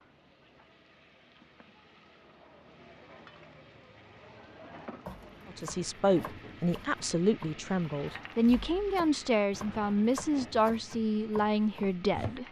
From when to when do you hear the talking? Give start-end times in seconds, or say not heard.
5.5-12.4.